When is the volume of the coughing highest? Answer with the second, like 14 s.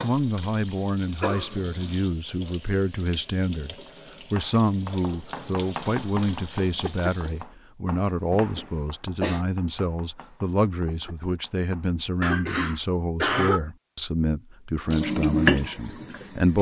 13 s.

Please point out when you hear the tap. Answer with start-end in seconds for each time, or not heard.
0.0-7.4, 14.8-16.5.